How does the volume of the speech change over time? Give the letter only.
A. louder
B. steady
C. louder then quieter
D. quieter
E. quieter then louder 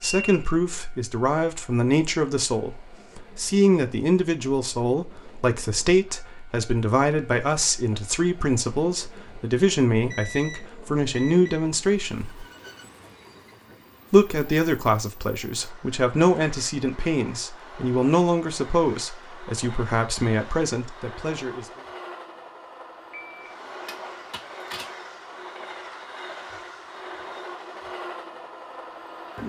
B.